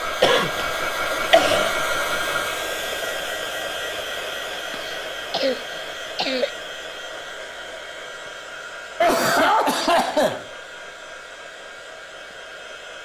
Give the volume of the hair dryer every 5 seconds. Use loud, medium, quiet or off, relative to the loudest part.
loud, medium, quiet.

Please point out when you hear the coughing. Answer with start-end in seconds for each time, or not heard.
0.2-1.7, 4.5-6.5, 9.0-10.4.